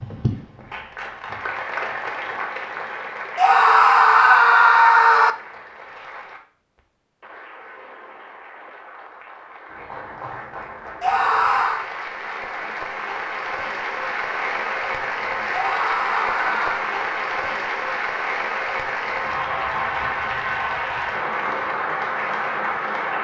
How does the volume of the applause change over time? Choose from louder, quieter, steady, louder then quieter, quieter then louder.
quieter then louder.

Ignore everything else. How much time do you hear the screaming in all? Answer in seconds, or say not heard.
4 s.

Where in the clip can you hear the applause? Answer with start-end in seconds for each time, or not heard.
0.0-23.1.